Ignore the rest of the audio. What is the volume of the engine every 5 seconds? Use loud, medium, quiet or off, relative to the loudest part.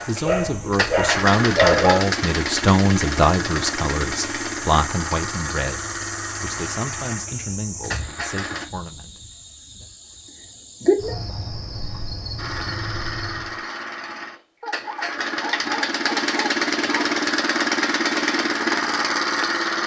loud, medium, medium, loud.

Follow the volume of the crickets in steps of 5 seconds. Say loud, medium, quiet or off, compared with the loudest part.
medium, medium, loud, off.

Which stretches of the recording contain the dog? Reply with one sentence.
You can hear the dog from 0.2 to 2.0 s and from 14.6 to 17.1 s.